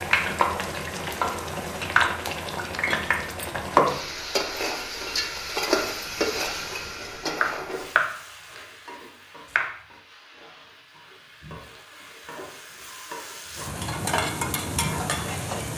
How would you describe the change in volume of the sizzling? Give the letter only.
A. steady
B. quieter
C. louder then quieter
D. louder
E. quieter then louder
E.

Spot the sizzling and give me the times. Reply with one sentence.
The sizzling can be heard from 0.0 to 15.7 s.